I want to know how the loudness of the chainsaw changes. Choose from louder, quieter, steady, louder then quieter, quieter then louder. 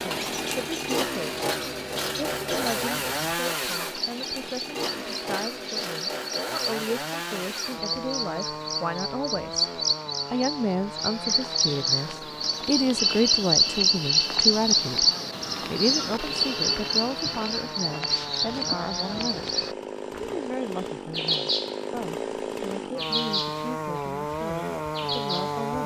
quieter then louder.